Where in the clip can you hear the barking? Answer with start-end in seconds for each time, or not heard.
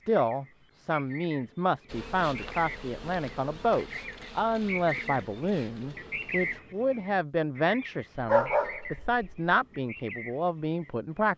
8.2-9.2.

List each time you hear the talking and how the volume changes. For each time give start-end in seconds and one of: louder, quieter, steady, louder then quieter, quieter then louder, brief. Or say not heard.
0.1-11.3 steady.